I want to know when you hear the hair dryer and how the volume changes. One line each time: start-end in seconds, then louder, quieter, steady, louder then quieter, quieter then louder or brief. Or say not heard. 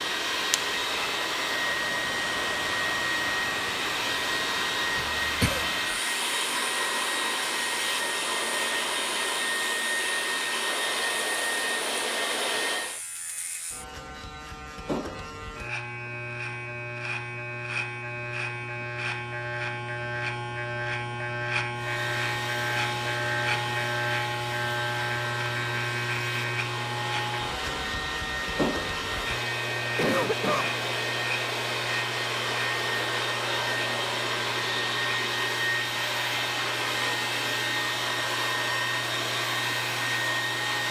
0.0-13.0 steady
21.8-40.8 louder.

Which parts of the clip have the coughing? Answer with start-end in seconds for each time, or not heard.
5.0-5.7, 29.9-30.8.